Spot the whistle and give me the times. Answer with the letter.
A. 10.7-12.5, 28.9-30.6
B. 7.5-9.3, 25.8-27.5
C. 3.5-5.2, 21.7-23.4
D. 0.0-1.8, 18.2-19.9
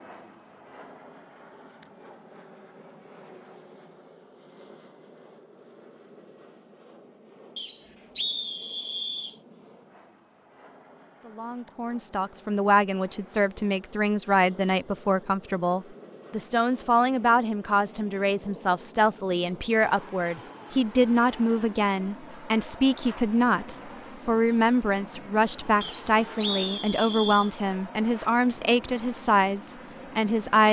B.